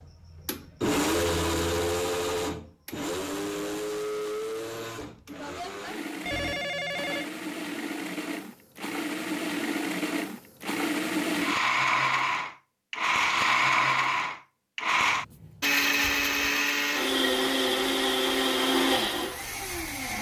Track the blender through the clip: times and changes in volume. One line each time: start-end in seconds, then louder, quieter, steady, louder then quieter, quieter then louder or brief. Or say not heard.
0.0-20.1 quieter then louder.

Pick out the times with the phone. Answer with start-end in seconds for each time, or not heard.
6.2-7.3.